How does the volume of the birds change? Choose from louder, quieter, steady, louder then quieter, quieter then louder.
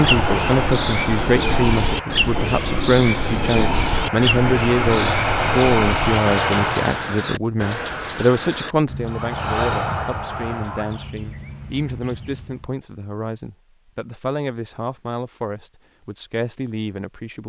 quieter.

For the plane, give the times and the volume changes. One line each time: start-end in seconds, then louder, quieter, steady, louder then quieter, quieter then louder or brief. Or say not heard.
0.0-7.0 quieter then louder
9.0-11.2 brief.